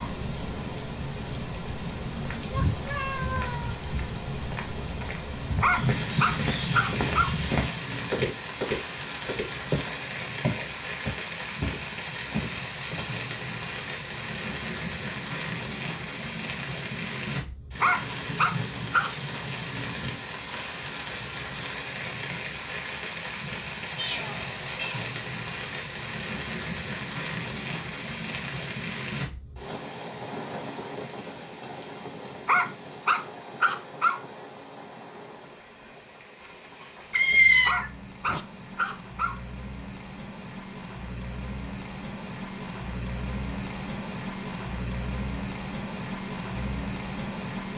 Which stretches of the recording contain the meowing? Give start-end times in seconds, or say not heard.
2.5-3.8, 23.9-25.1, 37.1-38.5.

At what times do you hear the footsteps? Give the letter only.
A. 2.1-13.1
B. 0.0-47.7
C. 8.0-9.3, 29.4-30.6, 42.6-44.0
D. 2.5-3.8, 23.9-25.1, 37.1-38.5
A.